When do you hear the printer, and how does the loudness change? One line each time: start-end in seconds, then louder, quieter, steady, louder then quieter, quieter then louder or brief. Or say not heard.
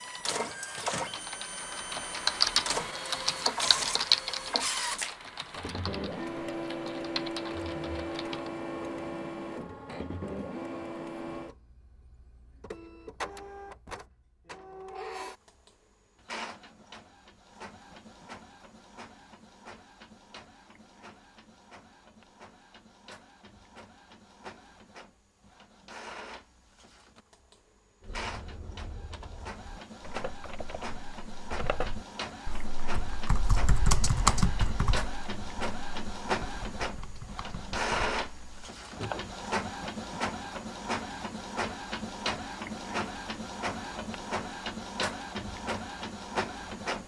0.0-47.0 quieter then louder.